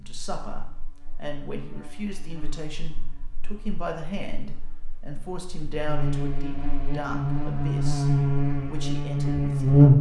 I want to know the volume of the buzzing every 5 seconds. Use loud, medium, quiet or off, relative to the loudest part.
quiet, loud.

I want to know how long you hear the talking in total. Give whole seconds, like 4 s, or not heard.
10 s.